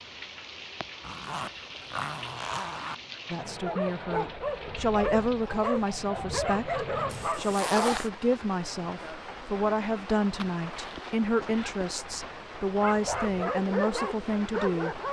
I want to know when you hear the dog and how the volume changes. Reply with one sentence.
You can hear the dog from 3.6 to 8.1 s, at a steady volume; and briefly from 12.7 to 15.0 s.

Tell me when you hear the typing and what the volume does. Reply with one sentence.
The typing can't be heard in this clip.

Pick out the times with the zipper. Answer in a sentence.
The zipper can be heard from 1.0 to 3.0 s, from 7.1 to 8.1 s and from 10.2 to 11.8 s.